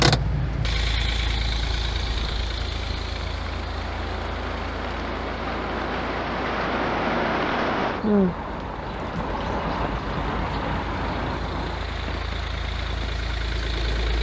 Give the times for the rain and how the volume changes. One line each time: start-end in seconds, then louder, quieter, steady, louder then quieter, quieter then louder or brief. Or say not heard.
0.1-14.1 louder then quieter.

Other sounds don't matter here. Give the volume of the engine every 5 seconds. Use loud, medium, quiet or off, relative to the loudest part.
loud, quiet, medium.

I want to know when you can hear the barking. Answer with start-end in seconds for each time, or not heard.
not heard.